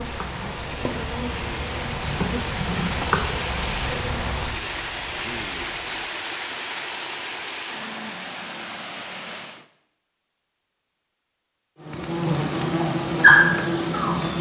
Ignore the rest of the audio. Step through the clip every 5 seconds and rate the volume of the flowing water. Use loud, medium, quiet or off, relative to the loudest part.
loud, loud, off.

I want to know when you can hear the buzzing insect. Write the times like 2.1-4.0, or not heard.
0.0-6.0, 11.8-14.3.